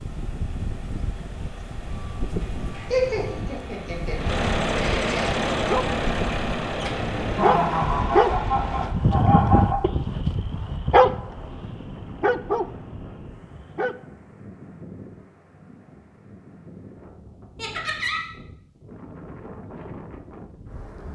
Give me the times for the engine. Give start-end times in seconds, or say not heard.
0.0-8.9.